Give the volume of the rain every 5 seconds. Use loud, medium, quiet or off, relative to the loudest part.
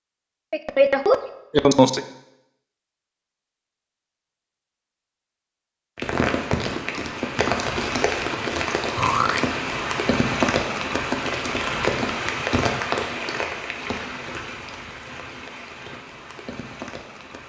off, loud, loud, quiet.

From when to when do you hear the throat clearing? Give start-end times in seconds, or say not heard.
0.5-2.0, 8.9-9.4.